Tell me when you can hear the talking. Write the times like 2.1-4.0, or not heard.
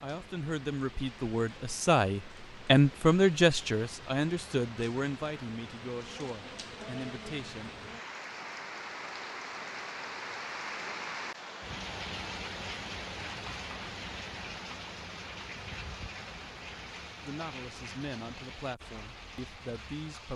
0.0-7.7, 17.2-20.3.